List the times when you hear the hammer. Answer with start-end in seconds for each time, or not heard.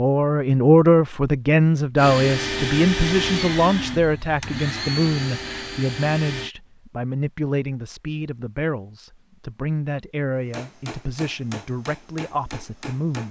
10.4-13.2.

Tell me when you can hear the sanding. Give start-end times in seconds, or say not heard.
not heard.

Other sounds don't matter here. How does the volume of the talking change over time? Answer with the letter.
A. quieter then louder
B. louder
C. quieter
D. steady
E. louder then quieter
C.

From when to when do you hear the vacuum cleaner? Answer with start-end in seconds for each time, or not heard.
1.9-6.5.